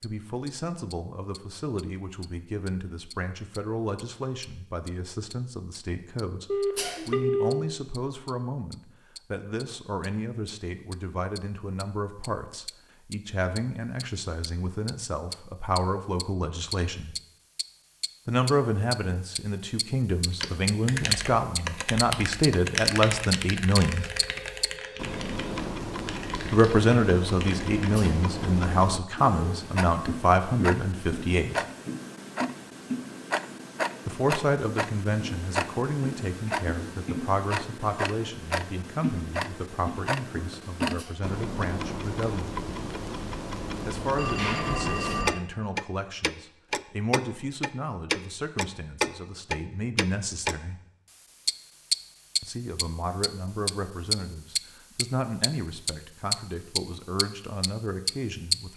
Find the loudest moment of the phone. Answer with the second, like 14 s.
7 s.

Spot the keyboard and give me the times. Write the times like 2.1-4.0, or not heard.
20.4-28.1.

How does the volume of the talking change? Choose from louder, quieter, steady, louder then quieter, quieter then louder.
louder then quieter.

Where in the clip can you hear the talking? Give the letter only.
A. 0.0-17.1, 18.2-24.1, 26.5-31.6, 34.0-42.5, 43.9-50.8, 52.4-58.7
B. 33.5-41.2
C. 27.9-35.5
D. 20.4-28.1
A.